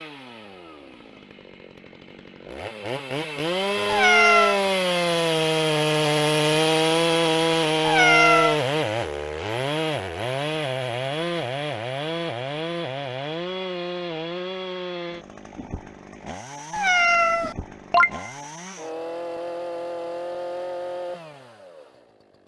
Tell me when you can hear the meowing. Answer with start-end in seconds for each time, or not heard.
3.9-4.6, 7.8-8.6, 16.7-18.3.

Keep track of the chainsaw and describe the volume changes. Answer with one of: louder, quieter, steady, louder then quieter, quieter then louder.
louder then quieter.